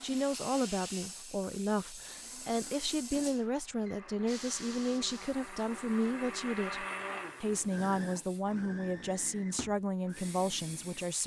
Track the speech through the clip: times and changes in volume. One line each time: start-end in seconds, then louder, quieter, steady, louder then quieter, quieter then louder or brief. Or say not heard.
0.0-11.2 steady.